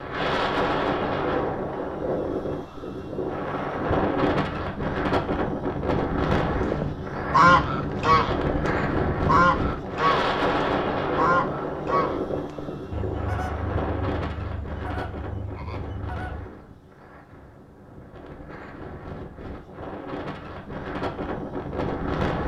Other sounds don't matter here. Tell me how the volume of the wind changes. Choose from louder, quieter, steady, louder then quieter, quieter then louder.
quieter.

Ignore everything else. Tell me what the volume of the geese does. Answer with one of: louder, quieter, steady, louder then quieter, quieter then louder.
quieter.